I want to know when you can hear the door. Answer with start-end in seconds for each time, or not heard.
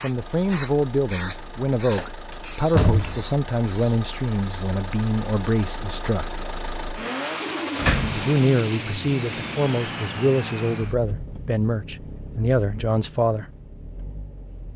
1.9-3.3, 7.8-8.3.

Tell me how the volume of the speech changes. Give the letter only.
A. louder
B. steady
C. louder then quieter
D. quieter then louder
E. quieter
B.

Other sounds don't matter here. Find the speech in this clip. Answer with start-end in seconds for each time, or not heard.
0.0-6.3, 8.1-13.4.